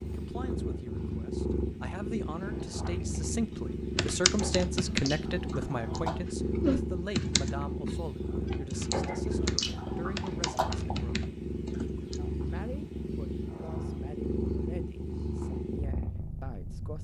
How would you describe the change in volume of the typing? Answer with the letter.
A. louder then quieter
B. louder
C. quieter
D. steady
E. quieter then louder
C.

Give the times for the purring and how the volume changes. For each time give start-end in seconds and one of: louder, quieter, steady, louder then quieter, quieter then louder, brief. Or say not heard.
0.0-17.0 steady.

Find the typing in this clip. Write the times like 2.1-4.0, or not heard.
3.5-12.2.